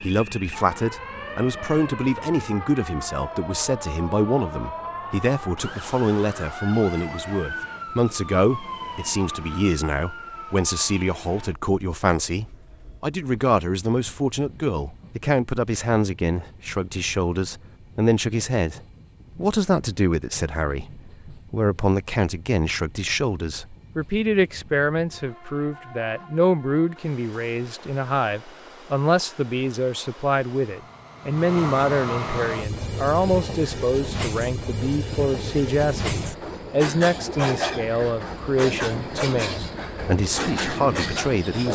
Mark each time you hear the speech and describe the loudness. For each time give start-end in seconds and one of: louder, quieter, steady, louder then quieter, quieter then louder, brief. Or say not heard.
0.0-41.6 steady.